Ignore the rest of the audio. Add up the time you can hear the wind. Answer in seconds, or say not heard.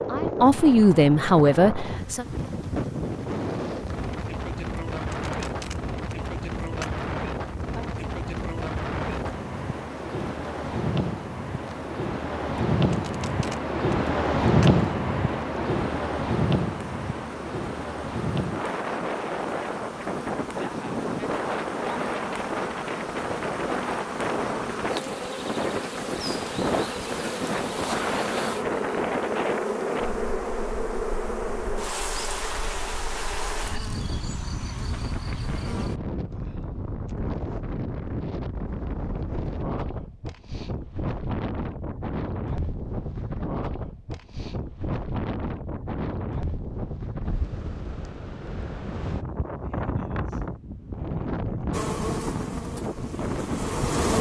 54 s.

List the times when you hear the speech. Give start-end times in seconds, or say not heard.
0.0-2.2.